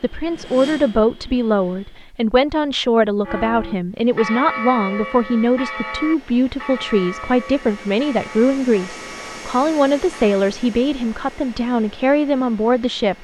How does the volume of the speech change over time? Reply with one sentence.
The loudness of the speech stays about the same.